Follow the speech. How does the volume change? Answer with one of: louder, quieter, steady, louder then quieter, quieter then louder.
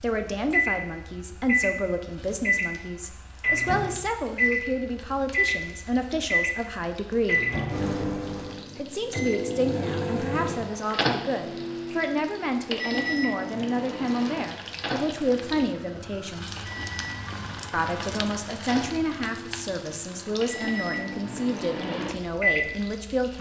steady.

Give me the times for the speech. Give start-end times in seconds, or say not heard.
0.0-7.4, 8.8-16.5, 17.7-23.3.